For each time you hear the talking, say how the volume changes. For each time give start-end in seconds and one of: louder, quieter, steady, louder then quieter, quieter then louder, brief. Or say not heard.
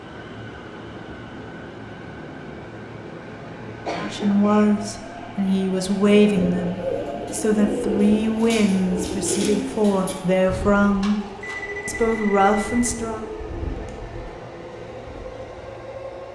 4.0-11.2 steady
11.8-13.2 brief.